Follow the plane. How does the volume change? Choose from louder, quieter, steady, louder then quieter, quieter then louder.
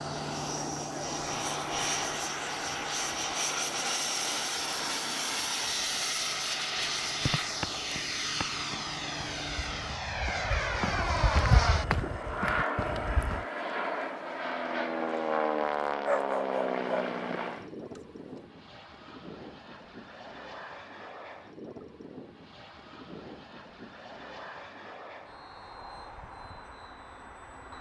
quieter.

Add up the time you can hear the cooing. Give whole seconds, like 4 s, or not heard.
not heard.